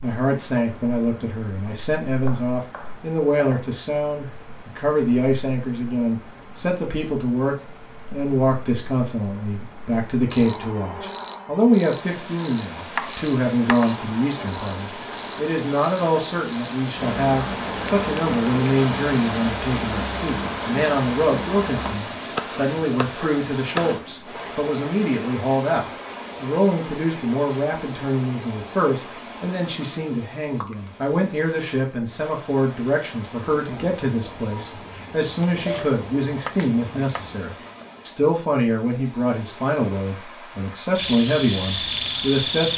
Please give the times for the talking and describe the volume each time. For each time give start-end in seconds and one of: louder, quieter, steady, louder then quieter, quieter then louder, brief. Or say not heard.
0.0-42.7 steady.